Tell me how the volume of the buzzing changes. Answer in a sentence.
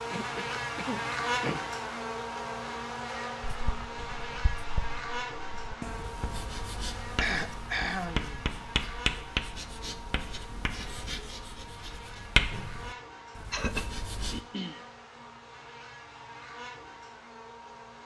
The volume of the buzzing goes down.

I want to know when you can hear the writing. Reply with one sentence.
You can hear the writing from 3.4 to 14.4 s.